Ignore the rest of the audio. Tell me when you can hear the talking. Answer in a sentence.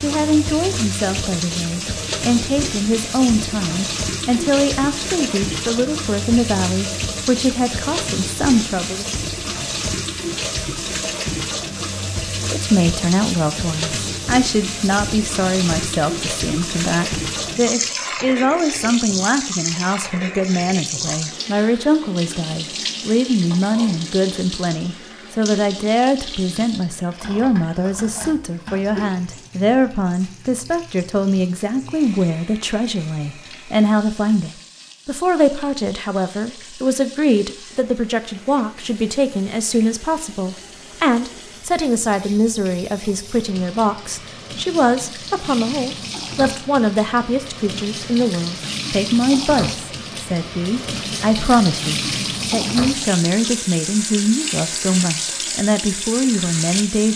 The talking can be heard from 0.0 to 9.1 s and from 12.4 to 57.1 s.